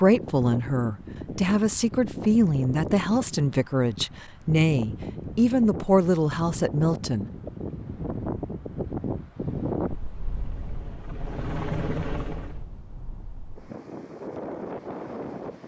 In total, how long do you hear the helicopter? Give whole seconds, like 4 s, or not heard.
3 s.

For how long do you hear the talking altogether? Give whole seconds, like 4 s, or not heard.
7 s.